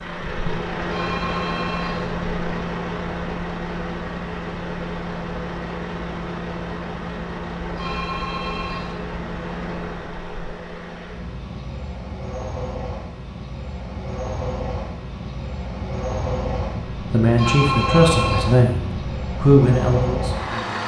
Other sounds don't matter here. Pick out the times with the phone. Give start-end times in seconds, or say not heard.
0.9-2.1, 7.8-8.9, 17.4-18.6.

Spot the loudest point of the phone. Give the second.
18 s.